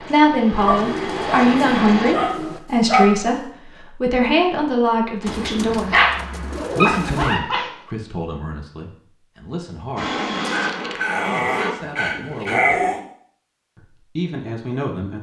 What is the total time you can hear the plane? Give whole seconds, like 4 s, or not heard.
4 s.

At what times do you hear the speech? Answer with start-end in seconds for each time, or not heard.
0.0-6.0, 6.8-10.2, 11.2-12.8, 13.8-15.1.